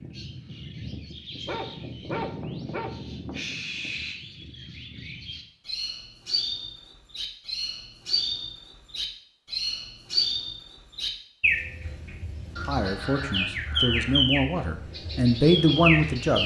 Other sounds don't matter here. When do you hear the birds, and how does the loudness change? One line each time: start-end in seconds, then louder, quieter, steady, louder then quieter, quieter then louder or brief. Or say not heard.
0.0-16.4 louder.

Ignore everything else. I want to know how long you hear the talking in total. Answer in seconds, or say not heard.
4 s.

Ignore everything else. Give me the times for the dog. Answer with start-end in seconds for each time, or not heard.
1.4-2.9.